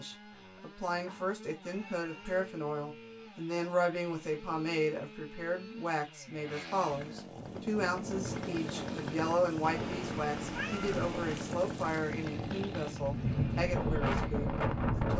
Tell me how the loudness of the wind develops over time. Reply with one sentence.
The volume of the wind goes up.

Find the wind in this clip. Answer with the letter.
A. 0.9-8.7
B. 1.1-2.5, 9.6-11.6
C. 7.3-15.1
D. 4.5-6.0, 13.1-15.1
C.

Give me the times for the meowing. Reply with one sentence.
You can hear the meowing from 1.1 to 2.5 s and from 9.6 to 11.6 s.